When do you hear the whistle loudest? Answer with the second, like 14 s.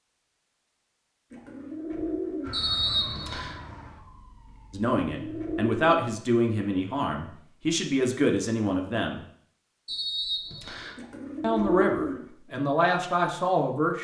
3 s.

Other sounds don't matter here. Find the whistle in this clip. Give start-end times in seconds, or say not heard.
2.5-3.6, 9.8-10.9.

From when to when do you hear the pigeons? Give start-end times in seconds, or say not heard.
1.3-2.6, 5.0-5.9, 10.9-12.3.